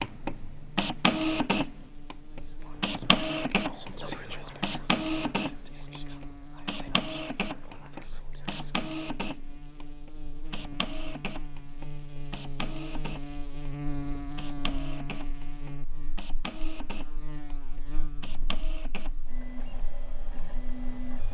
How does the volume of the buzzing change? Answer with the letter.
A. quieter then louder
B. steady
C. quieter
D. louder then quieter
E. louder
D.